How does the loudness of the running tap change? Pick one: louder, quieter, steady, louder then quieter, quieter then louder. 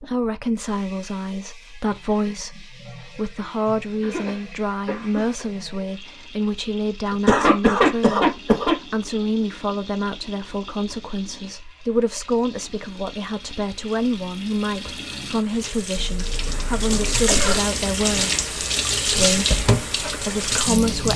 louder.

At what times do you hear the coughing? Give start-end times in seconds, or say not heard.
4.0-5.5, 7.1-8.8, 15.9-17.6.